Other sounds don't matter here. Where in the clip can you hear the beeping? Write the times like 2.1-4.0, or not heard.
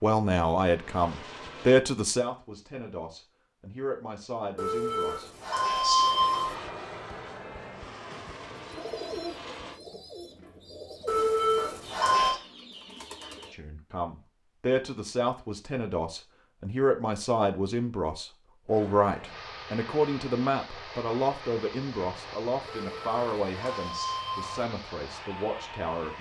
4.5-6.5, 11.1-12.4, 22.6-24.6.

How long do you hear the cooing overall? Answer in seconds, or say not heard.
5 s.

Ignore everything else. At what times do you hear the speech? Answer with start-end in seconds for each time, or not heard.
0.0-5.3, 13.5-26.1.